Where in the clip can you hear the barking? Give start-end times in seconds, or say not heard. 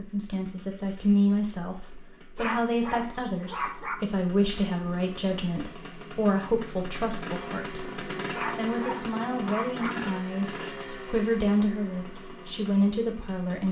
2.4-4.0, 8.3-9.9.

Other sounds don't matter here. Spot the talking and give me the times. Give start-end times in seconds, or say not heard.
0.0-13.6.